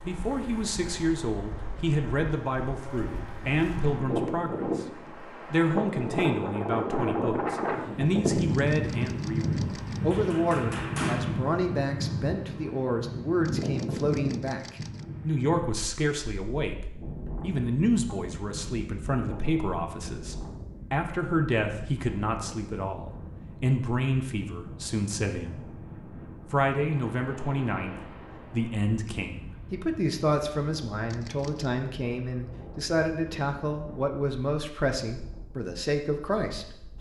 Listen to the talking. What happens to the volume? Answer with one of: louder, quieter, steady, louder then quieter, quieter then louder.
steady.